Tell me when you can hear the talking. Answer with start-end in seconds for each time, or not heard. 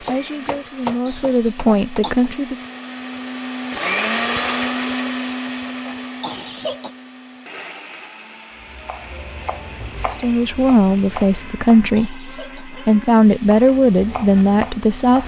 0.1-2.5, 10.2-15.2.